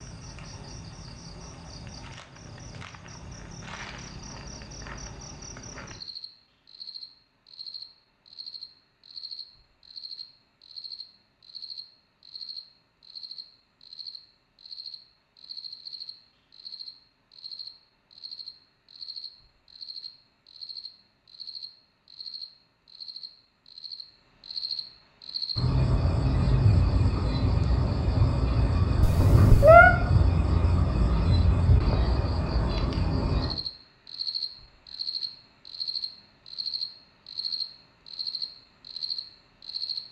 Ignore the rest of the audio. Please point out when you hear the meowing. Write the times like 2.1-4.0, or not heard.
29.0-29.9.